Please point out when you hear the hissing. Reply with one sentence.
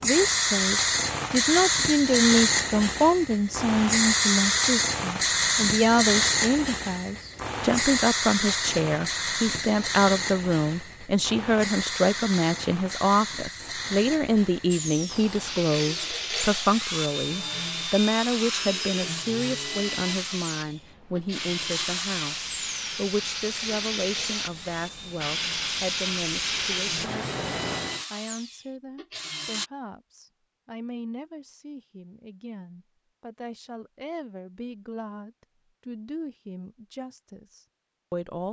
The hissing can be heard from 0.0 to 28.1 s.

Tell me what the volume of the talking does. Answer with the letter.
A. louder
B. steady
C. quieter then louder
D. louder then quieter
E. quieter
E.